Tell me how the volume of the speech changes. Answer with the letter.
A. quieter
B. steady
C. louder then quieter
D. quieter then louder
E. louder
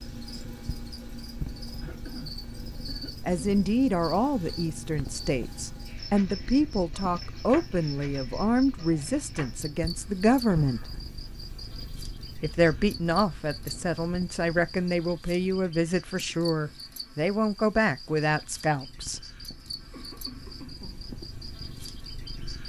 B.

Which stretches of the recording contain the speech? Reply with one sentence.
The speech can be heard from 3.2 to 10.8 s and from 12.4 to 19.2 s.